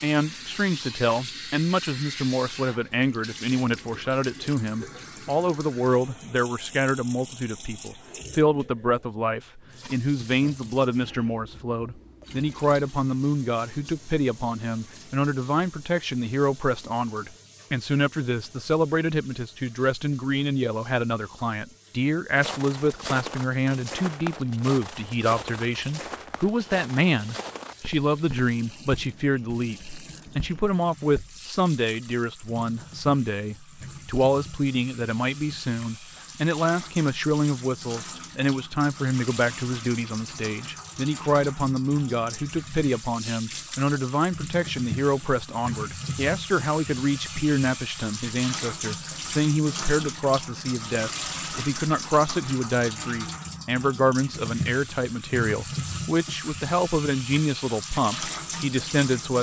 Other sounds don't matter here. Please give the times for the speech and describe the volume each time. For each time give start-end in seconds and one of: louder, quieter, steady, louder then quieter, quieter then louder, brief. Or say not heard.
0.0-59.3 steady.